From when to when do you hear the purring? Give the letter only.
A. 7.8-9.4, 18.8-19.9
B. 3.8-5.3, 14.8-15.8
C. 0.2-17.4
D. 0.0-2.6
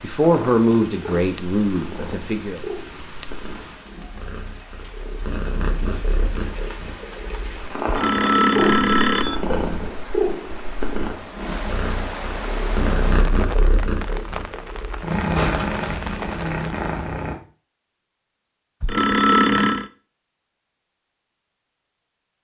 C.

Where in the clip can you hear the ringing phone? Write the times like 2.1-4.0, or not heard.
7.8-9.4, 18.8-19.9.